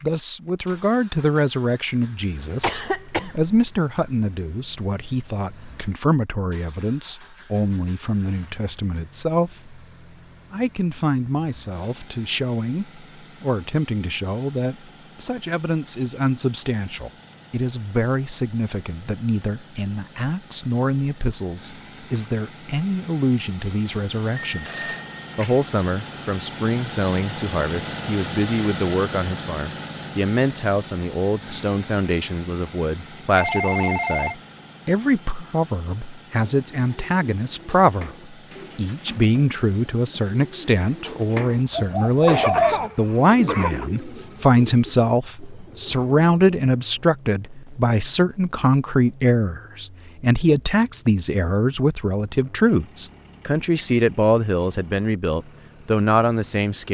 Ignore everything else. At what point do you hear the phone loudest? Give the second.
34 s.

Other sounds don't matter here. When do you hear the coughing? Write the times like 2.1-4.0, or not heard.
2.6-3.6, 41.8-43.9.